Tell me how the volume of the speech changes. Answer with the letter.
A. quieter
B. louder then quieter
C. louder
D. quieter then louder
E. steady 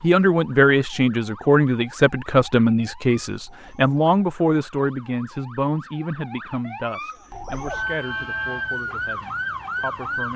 A.